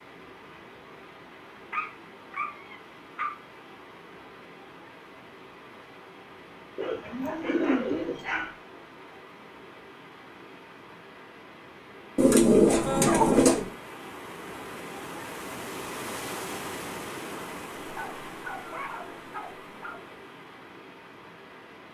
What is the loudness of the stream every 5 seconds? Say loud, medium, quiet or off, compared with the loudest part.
medium, medium, medium, loud, medium.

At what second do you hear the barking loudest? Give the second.
13 s.